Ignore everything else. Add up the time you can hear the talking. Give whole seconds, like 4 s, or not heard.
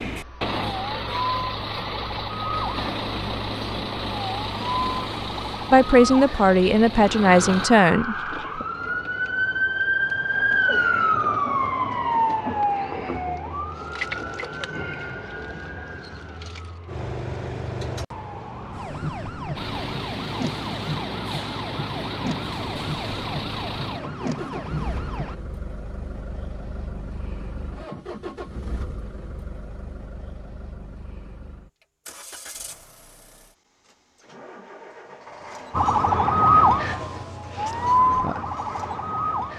3 s.